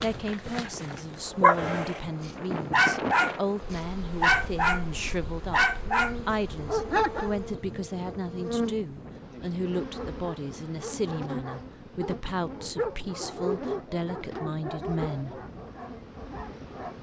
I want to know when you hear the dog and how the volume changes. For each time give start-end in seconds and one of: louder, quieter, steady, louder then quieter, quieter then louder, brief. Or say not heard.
0.0-7.3 steady
9.8-16.9 louder then quieter.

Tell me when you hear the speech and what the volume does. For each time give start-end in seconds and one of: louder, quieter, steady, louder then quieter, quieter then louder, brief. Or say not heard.
0.0-15.4 steady.